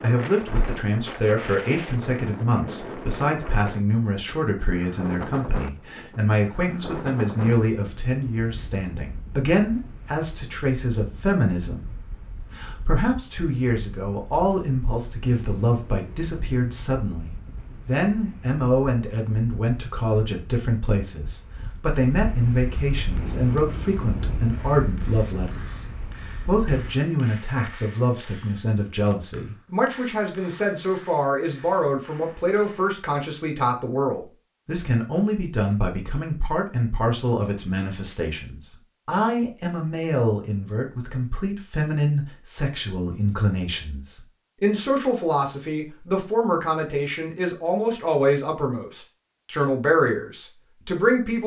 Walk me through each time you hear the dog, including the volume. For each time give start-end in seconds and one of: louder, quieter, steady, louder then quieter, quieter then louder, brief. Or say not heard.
not heard.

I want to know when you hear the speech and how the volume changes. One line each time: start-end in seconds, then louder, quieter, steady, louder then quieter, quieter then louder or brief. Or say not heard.
0.0-51.4 steady.